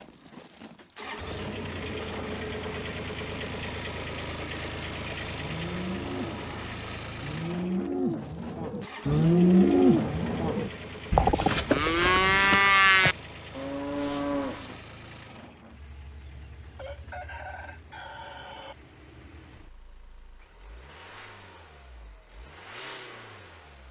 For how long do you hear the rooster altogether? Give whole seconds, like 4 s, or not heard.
2 s.